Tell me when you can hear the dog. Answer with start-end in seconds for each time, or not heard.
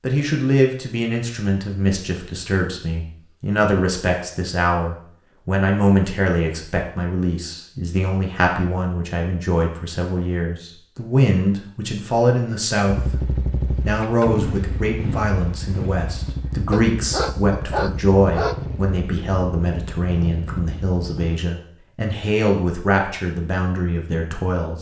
16.7-18.6.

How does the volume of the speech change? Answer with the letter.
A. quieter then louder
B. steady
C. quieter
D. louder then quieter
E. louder
B.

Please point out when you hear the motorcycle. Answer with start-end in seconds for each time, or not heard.
12.8-21.4.